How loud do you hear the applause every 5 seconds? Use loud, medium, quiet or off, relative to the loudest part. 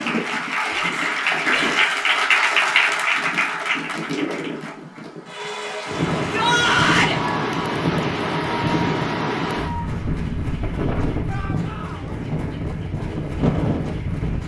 loud, medium, quiet.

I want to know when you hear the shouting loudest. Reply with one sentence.
The volume of the shouting peaks at 7 seconds.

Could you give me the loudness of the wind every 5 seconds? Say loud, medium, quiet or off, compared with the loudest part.
medium, loud, loud.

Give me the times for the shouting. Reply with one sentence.
The shouting can be heard from 0.7 to 1.9 s, from 6.3 to 7.2 s and from 11.2 to 12.2 s.